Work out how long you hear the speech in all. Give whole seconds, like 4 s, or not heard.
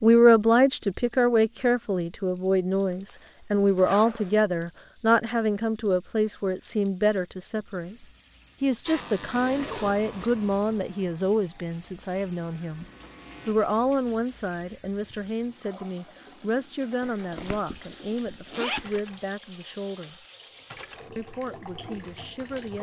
21 s.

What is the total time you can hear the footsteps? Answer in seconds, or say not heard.
not heard.